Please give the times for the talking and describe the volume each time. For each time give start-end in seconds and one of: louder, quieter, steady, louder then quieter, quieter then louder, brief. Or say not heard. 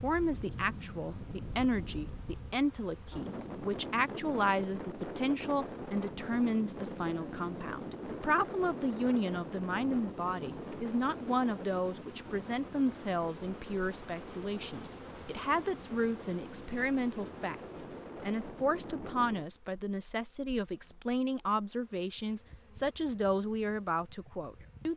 0.0-24.9 steady.